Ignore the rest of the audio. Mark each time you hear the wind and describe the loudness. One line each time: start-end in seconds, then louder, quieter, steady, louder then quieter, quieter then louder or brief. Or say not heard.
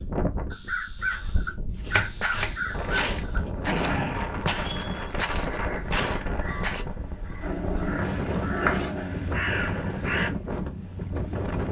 0.0-11.6 louder.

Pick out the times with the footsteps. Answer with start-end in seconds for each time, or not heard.
2.2-6.8.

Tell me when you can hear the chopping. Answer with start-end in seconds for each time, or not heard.
0.9-2.6, 8.0-9.4.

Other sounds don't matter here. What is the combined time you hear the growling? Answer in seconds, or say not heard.
3 s.